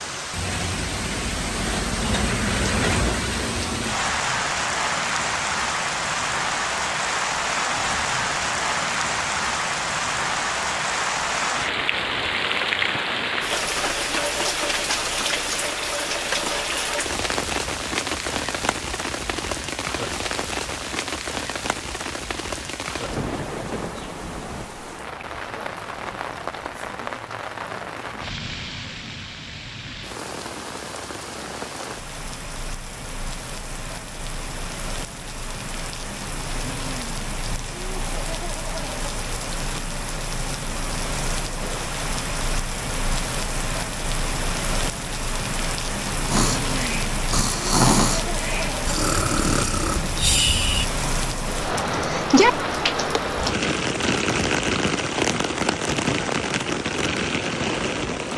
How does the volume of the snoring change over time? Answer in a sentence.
The loudness of the snoring goes up, then down.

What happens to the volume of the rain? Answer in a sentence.
The volume of the rain goes down, then up.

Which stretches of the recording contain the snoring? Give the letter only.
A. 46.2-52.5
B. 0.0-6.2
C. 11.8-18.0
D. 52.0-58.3
A.